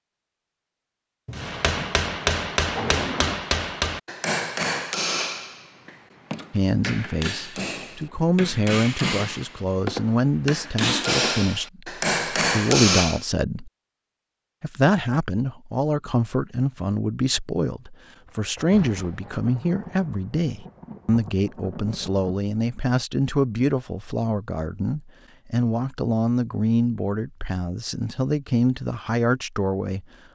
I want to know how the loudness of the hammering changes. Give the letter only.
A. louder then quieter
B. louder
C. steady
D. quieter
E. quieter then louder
E.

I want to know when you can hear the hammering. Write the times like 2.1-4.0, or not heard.
1.3-13.2.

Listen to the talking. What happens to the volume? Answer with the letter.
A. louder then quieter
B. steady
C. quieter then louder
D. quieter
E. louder
B.